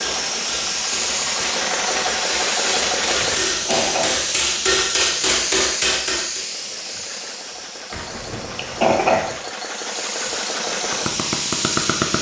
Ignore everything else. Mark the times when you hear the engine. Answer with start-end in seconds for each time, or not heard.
0.0-3.4, 6.5-12.1.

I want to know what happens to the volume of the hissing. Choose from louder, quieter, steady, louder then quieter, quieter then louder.
quieter then louder.